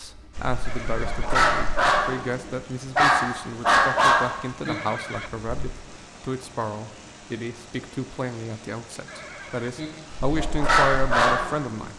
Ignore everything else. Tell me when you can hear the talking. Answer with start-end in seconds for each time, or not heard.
0.0-11.9.